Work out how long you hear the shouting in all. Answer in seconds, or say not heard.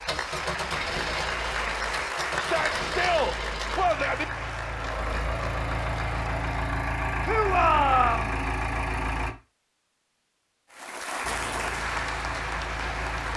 3 s.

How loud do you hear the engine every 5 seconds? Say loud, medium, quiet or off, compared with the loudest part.
medium, loud, medium.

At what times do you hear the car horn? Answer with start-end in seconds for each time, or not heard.
not heard.